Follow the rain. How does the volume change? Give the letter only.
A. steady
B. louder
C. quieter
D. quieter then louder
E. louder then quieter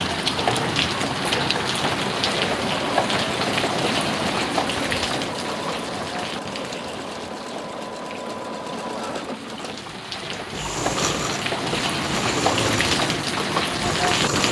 D.